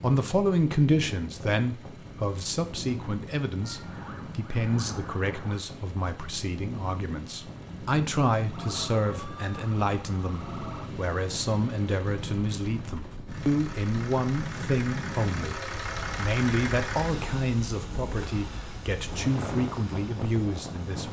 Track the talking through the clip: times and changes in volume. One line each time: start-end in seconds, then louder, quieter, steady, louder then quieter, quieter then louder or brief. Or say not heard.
0.0-21.0 steady.